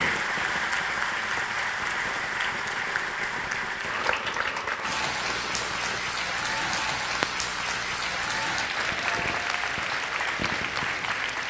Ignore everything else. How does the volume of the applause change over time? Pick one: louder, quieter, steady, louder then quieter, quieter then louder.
steady.